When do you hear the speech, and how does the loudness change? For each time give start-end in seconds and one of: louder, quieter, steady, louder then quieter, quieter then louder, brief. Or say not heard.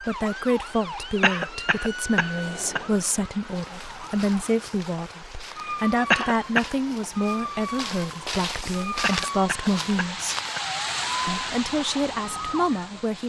0.0-10.3 steady
11.2-13.2 brief.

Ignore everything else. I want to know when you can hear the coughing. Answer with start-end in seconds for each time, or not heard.
1.2-2.8, 6.1-6.7, 9.0-10.6.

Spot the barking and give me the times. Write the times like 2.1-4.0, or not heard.
not heard.